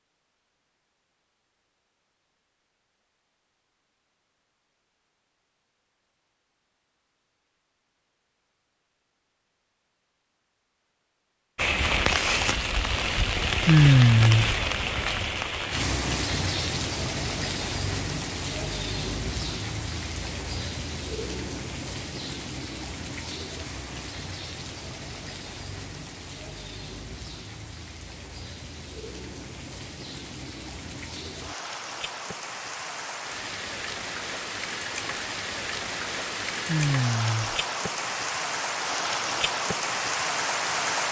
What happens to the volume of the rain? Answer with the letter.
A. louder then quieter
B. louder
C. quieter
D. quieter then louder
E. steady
D.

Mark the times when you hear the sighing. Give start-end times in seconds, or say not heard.
13.7-14.6, 36.6-37.6.